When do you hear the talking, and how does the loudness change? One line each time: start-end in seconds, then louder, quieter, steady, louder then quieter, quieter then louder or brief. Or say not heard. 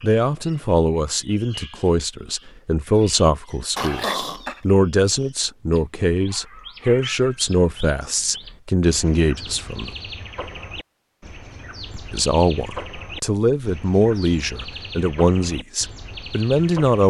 0.0-9.9 steady
11.9-17.0 steady.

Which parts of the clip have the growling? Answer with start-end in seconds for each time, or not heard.
3.8-4.6.